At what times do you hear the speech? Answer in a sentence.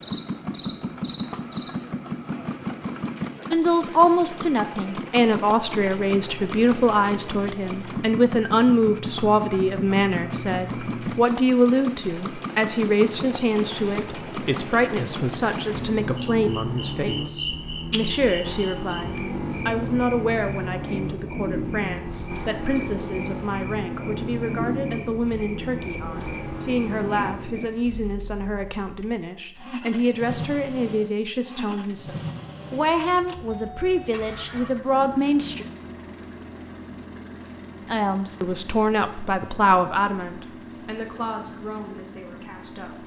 The speech can be heard from 3.5 to 35.6 s and from 37.9 to 43.0 s.